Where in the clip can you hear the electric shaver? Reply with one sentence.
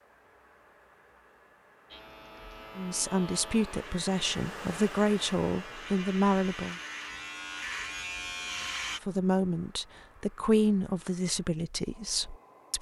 The electric shaver can be heard from 1.9 to 9.0 s.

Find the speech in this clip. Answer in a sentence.
The speech can be heard from 2.8 to 6.8 s and from 9.0 to 12.7 s.